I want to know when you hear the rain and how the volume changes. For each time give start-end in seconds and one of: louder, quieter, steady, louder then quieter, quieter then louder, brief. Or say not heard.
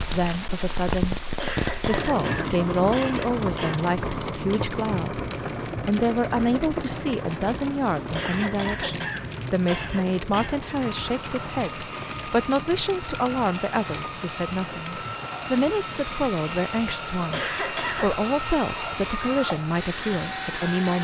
0.0-20.8 quieter.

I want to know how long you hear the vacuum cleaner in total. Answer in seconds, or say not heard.
10 s.